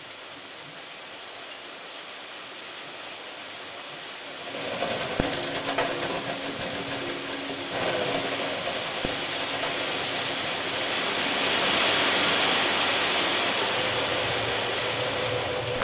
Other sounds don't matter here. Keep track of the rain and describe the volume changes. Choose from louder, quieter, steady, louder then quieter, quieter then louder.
louder.